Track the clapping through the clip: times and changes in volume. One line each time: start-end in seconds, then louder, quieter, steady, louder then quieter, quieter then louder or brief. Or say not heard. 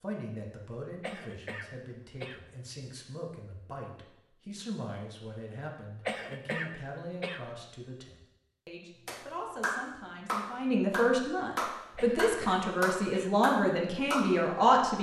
9.1-14.4 steady.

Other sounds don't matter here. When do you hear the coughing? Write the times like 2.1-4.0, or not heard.
1.0-2.9, 6.0-7.5, 11.9-13.3.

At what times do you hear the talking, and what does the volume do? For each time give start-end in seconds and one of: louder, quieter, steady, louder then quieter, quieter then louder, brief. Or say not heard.
0.0-14.9 louder.